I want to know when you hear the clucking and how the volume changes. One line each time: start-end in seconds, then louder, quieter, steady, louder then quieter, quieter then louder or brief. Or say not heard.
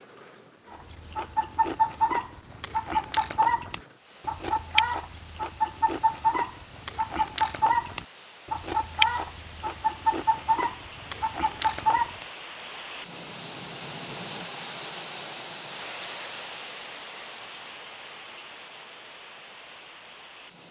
0.7-12.2 steady.